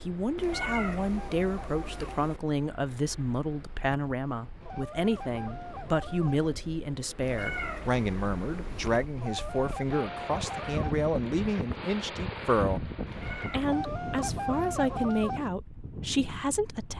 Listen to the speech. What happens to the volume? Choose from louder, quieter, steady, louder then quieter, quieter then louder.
steady.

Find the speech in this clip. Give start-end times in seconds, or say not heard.
0.1-16.9.